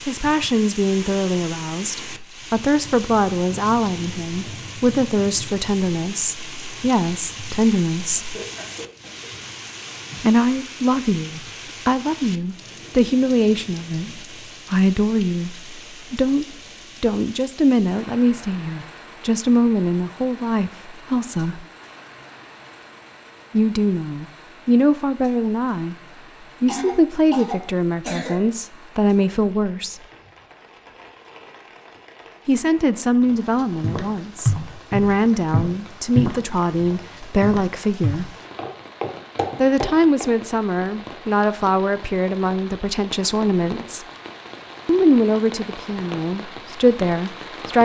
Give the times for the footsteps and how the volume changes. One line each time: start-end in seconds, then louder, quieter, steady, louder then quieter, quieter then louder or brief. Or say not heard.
33.8-40.2 quieter then louder.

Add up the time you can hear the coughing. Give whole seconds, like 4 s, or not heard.
3 s.